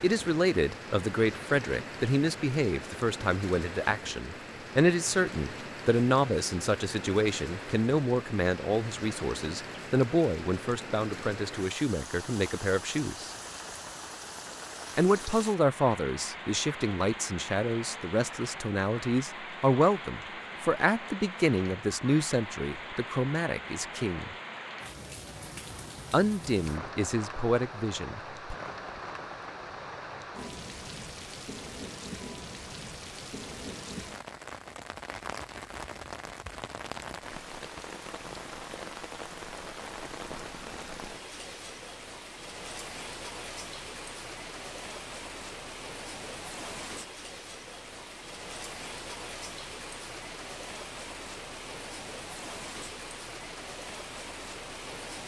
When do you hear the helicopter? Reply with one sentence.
The helicopter can't be heard in this clip.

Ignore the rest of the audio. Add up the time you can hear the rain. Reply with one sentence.
The rain can be heard for 55 seconds in total.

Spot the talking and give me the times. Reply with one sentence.
The talking can be heard from 0.0 to 13.3 s, from 14.9 to 24.4 s and from 26.1 to 28.6 s.